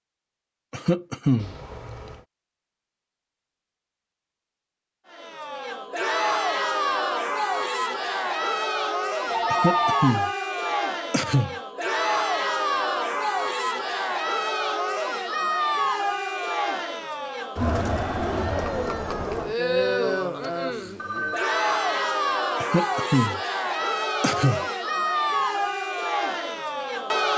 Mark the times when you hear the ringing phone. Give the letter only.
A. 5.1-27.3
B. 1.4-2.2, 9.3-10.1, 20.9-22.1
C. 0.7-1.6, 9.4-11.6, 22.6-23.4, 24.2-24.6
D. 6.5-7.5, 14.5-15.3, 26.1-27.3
B.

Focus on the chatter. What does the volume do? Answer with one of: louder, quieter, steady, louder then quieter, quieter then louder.
steady.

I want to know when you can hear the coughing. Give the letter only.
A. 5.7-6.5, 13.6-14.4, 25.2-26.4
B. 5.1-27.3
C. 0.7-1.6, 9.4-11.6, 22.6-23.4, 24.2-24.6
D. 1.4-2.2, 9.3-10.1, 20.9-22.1
C.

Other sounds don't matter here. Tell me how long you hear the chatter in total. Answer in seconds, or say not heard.
22 s.